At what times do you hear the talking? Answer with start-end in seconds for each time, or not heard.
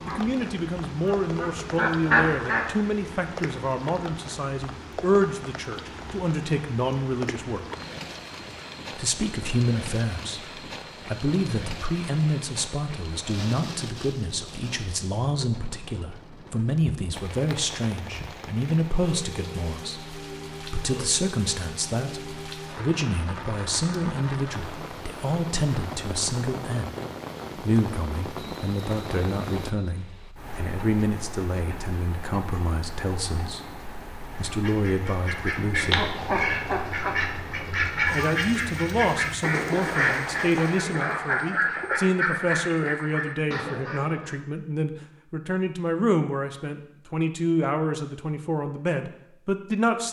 0.0-7.7, 8.9-26.9, 27.6-36.1, 38.1-50.0.